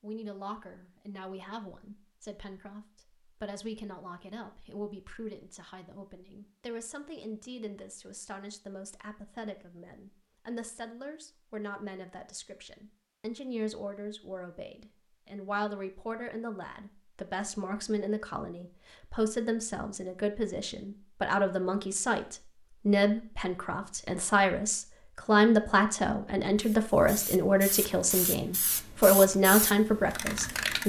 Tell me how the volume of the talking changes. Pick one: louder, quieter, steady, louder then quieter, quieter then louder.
louder.